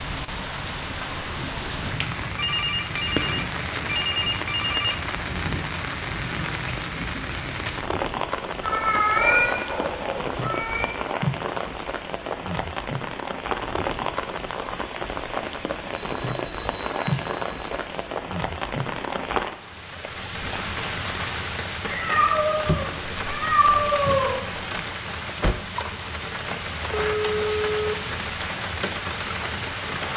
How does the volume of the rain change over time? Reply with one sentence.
The volume of the rain stays about the same.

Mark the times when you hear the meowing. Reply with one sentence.
The meowing can be heard from 8.6 to 10.9 s and from 21.9 to 24.3 s.